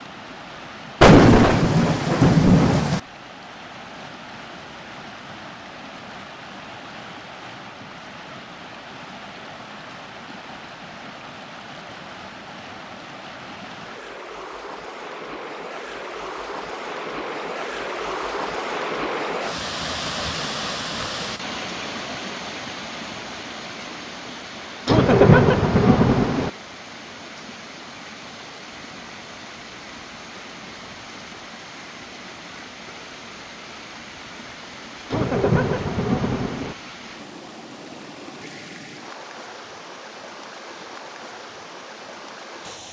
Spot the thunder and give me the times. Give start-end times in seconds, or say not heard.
1.0-3.0, 24.9-26.5, 35.1-36.8.